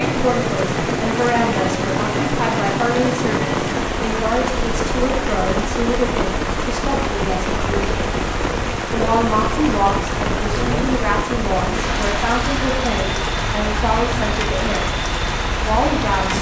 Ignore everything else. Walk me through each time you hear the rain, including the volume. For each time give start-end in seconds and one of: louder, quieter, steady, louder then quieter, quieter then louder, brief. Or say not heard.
0.0-16.3 steady.